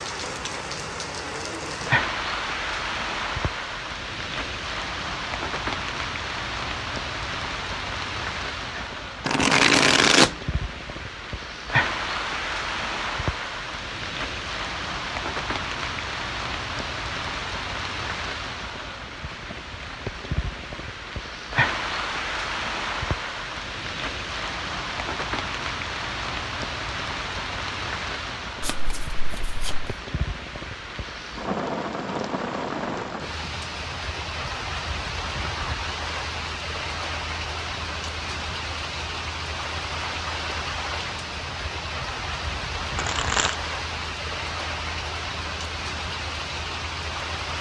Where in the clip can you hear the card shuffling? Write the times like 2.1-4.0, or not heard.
8.8-10.3, 28.6-29.9, 43.0-43.5.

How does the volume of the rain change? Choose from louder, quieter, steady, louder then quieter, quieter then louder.
steady.